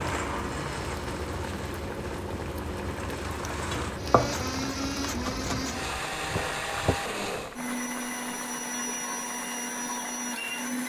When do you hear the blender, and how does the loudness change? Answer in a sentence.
The blender can be heard from 0.0 to 10.8 s, getting louder.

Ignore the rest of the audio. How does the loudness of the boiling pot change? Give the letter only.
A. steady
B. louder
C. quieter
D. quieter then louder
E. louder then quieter
C.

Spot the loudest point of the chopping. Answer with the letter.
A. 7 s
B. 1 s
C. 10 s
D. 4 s
D.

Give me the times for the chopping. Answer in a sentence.
You can hear the chopping from 3.5 to 7.0 s.